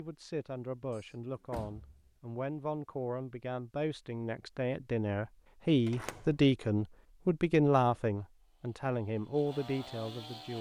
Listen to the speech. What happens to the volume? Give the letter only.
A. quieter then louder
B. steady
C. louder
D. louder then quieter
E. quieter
D.